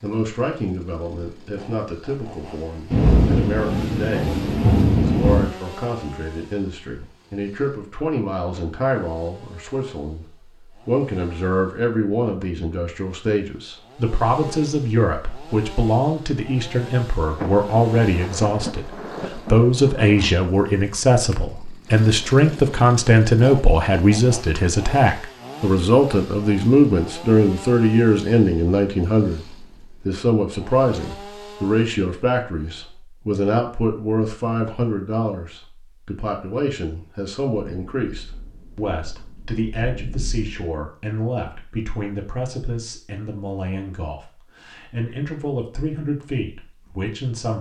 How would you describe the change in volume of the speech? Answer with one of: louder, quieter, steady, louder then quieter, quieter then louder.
louder then quieter.